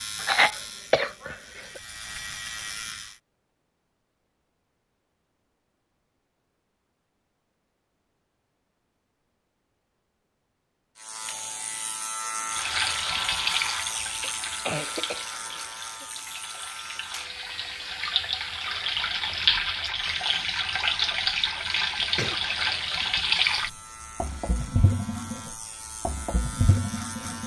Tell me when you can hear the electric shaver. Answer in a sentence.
You can hear the electric shaver from 0.0 to 3.2 s and from 10.9 to 27.4 s.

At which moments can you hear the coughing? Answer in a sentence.
The coughing can be heard from 0.2 to 1.8 s, from 14.2 to 16.1 s and from 22.1 to 22.8 s.